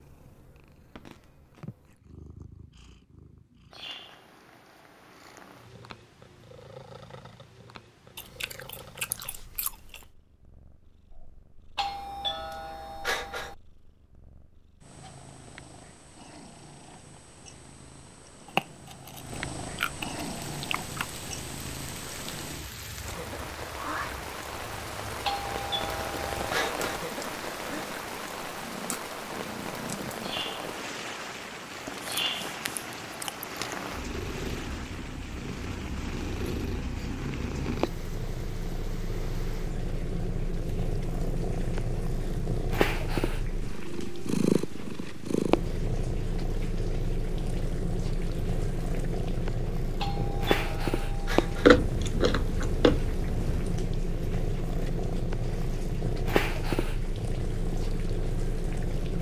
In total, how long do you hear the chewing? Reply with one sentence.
The chewing can be heard for 9 seconds in total.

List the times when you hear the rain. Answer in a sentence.
The rain can be heard from 20.2 to 59.1 s.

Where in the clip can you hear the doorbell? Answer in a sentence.
The doorbell can be heard from 11.8 to 13.6 s, from 25.2 to 27.1 s and from 50.0 to 51.8 s.